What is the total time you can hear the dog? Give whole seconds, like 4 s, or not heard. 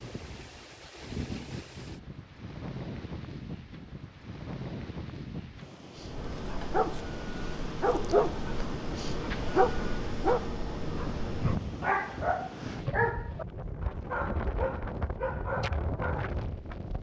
10 s.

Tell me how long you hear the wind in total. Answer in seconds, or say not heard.
17 s.